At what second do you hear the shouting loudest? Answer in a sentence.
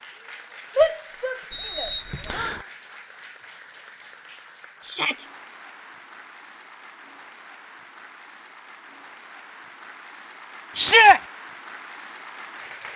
The loudest moment of the shouting is at 11 seconds.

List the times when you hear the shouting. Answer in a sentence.
The shouting can be heard from 0.8 to 2.5 s, from 4.8 to 5.2 s and from 10.8 to 11.2 s.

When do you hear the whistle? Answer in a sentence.
You can hear the whistle from 1.5 to 2.6 s.